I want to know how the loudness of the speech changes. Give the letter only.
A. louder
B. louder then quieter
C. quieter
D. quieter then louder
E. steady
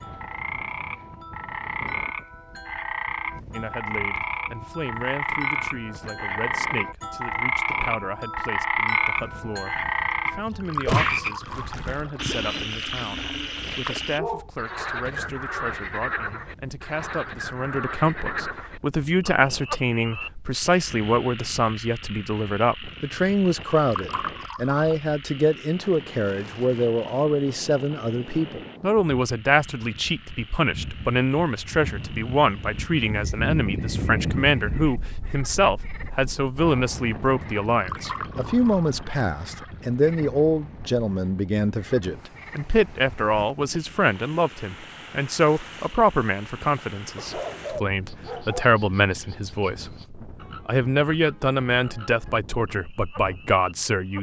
A.